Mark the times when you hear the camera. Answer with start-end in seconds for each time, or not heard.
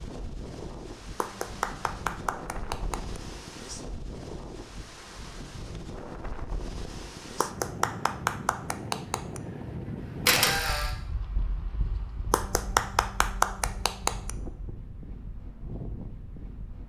10.2-10.9.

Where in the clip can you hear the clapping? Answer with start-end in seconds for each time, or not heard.
1.1-3.2, 7.3-9.4, 12.3-14.3.